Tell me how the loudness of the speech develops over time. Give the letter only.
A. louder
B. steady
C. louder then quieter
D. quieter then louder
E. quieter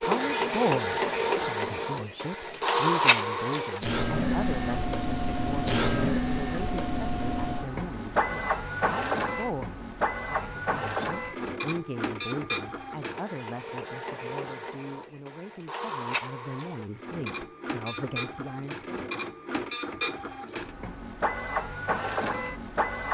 E.